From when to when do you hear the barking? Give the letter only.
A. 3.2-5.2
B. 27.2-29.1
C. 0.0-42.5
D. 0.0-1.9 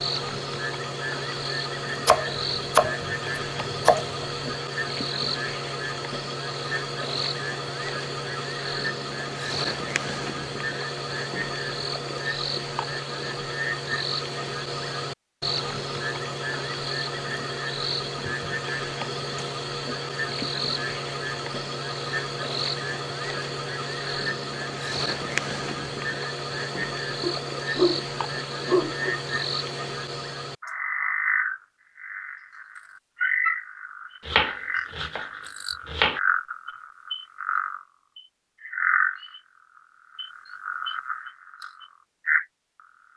B.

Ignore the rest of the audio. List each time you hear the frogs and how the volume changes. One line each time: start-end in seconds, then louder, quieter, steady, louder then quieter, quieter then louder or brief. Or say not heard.
0.0-42.5 steady.